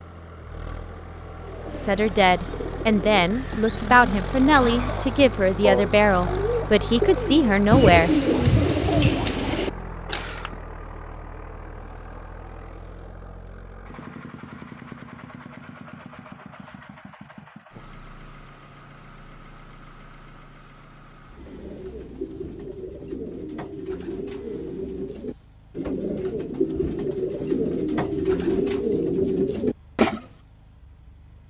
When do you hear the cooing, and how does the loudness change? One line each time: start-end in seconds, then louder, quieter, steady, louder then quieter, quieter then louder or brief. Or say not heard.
1.4-10.6 louder
21.4-30.2 louder.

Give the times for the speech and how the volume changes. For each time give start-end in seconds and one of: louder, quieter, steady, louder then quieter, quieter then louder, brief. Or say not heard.
1.8-8.1 steady.